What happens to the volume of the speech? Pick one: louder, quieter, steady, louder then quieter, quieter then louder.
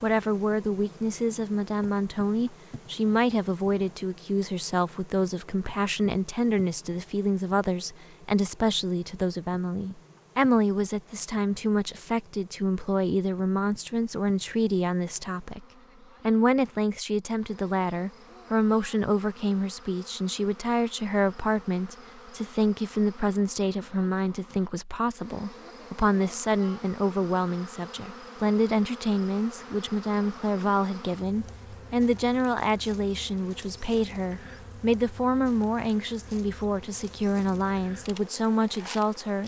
steady.